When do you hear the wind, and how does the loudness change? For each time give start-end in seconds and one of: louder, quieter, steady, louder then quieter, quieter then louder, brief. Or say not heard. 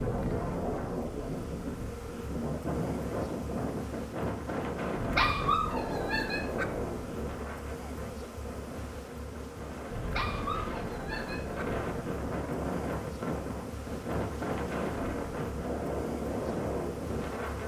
0.0-17.6 quieter then louder.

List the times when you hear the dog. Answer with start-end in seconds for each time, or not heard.
5.1-6.7, 10.1-11.7.